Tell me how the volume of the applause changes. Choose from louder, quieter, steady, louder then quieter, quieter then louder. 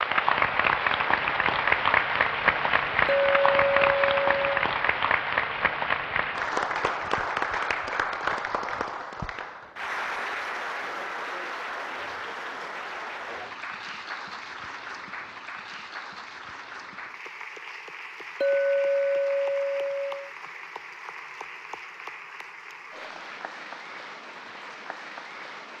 quieter.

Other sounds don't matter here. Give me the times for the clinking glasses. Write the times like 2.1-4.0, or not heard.
3.0-4.6, 18.4-20.3.